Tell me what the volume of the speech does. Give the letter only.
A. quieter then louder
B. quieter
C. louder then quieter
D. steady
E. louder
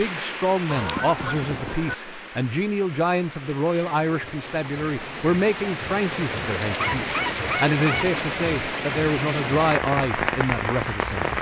D.